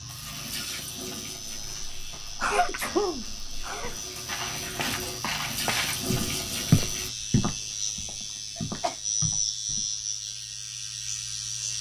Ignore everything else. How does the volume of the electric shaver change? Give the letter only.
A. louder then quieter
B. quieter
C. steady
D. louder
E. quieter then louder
D.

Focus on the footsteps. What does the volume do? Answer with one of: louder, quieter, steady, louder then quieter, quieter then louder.
louder then quieter.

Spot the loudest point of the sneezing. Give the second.
3 s.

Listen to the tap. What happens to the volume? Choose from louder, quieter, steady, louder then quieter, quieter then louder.
quieter then louder.